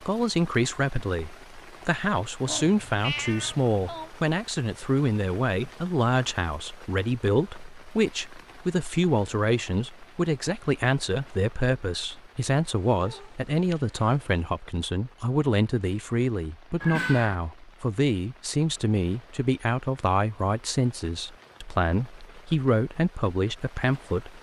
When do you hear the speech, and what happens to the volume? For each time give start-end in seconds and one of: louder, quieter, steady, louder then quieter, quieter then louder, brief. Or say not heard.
0.0-24.3 steady.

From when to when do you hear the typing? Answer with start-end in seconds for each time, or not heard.
not heard.